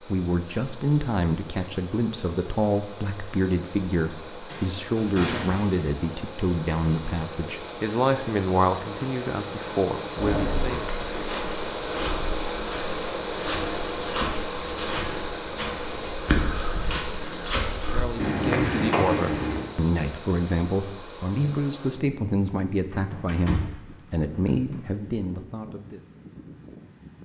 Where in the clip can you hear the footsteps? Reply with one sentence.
You can hear the footsteps from 10.8 to 19.6 s.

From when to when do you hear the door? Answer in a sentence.
You can hear the door from 4.5 to 5.8 s, from 10.2 to 10.8 s and from 22.9 to 24.8 s.